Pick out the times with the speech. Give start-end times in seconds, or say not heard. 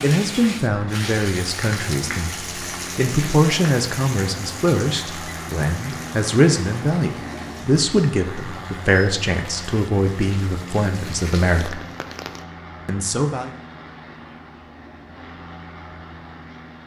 0.0-11.8, 12.8-13.5.